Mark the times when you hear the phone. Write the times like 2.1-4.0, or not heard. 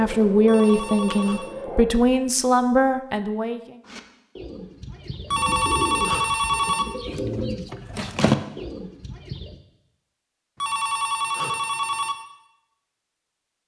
0.5-1.6, 5.3-6.8, 10.6-12.2.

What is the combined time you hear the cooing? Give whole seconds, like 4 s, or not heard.
6 s.